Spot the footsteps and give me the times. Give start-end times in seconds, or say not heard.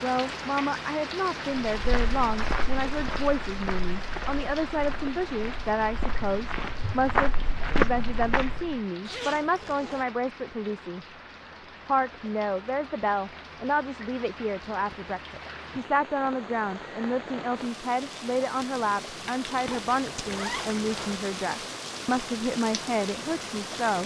1.8-8.8.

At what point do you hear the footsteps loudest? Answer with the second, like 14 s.
8 s.